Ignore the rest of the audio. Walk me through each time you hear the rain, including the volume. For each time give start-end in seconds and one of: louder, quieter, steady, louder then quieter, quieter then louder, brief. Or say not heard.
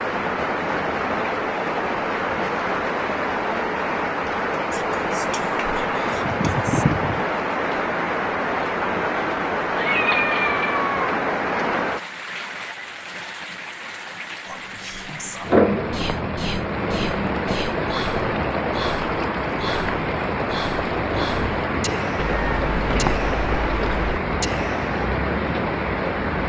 0.0-26.4 steady.